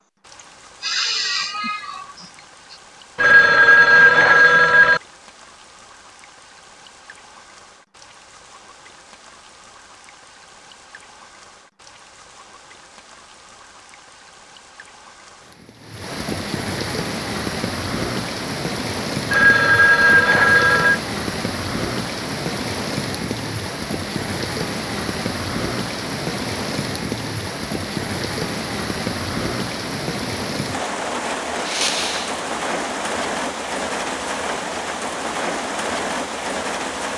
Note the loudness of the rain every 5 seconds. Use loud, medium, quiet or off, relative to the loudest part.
quiet, quiet, quiet, loud, loud, loud, loud, loud.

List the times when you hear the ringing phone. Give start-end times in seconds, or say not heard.
3.1-5.0, 19.3-21.0.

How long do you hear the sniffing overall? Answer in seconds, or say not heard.
3 s.